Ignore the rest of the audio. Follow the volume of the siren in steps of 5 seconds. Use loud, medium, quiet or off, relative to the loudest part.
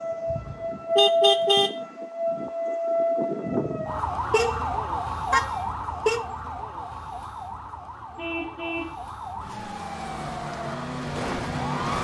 loud, medium, loud.